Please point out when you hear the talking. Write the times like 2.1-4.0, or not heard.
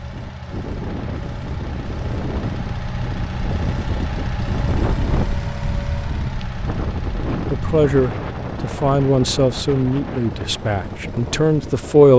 7.5-12.1.